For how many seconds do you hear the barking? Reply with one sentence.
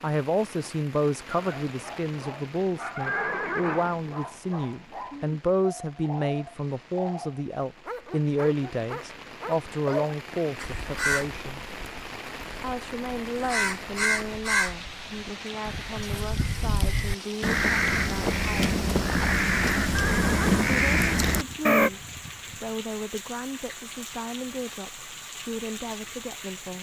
You can hear the barking for 9 seconds altogether.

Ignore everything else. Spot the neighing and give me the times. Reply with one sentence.
The neighing can be heard from 3.0 to 4.0 s and from 19.9 to 20.8 s.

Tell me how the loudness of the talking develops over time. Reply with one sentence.
The volume of the talking goes down.